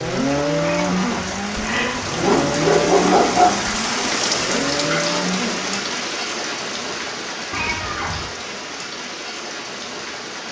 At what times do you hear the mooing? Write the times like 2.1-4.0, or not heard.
0.0-5.8.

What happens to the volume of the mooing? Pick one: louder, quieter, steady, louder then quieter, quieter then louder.
quieter then louder.